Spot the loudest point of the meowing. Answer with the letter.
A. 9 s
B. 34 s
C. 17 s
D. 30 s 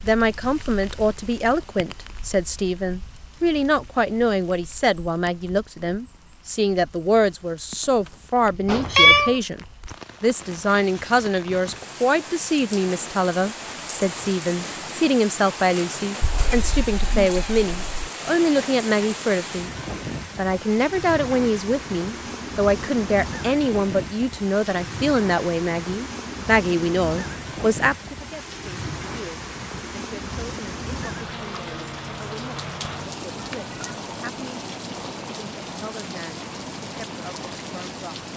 A.